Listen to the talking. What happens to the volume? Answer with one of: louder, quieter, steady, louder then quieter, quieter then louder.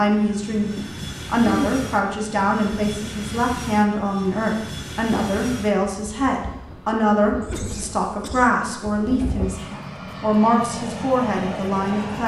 steady.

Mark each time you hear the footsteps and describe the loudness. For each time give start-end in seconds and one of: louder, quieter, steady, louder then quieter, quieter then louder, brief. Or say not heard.
not heard.